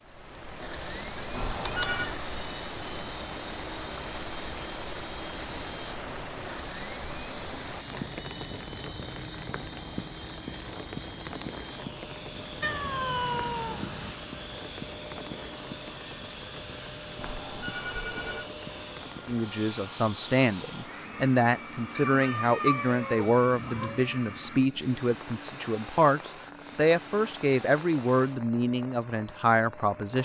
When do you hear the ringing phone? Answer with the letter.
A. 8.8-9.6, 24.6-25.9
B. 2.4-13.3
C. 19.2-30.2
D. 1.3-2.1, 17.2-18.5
D.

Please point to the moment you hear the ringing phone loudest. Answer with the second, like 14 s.
2 s.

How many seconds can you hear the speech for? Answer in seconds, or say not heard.
11 s.